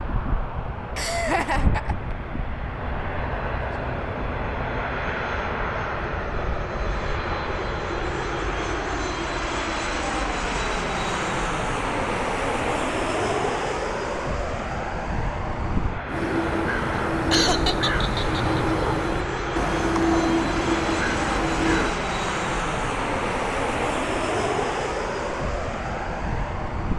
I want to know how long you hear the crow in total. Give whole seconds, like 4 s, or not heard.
6 s.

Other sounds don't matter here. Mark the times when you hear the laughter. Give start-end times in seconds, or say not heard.
0.9-2.1, 17.3-18.6.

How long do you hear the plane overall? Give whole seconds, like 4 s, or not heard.
27 s.